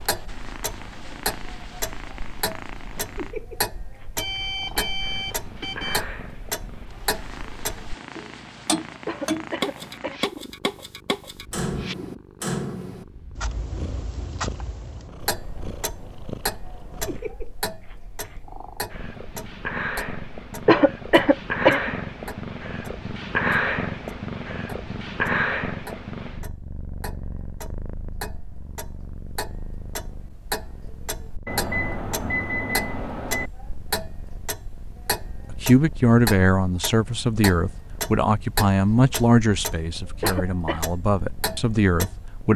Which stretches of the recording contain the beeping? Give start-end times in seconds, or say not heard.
4.2-6.0, 31.4-33.5.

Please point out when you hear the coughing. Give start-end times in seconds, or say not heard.
9.1-10.3, 20.6-21.9, 40.2-40.9.